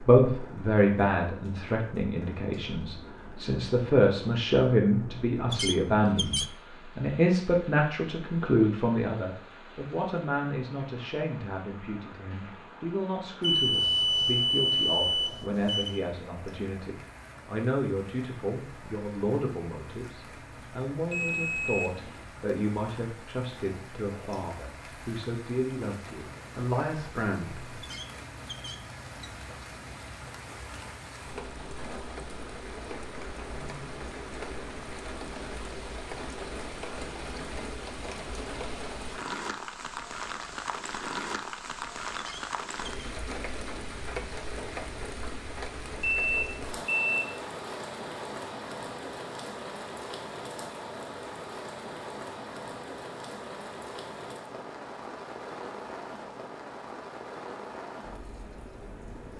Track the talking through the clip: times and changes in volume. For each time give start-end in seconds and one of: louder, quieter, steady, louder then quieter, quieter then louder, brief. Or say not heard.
0.0-27.8 quieter.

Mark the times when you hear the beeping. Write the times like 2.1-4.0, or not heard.
13.4-16.0, 21.1-22.2, 46.0-47.1.